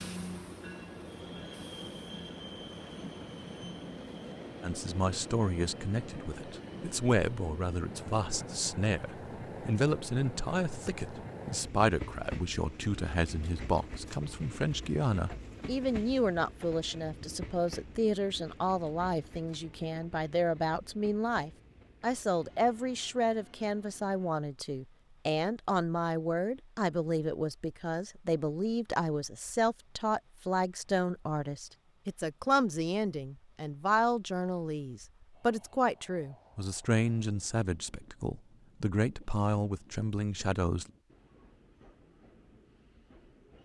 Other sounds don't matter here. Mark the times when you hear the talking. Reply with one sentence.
The talking can be heard from 4.6 to 40.9 s.